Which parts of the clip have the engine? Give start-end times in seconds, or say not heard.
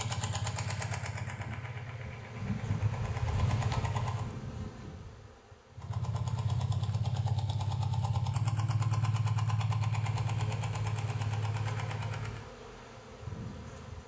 0.0-4.3, 5.7-12.5.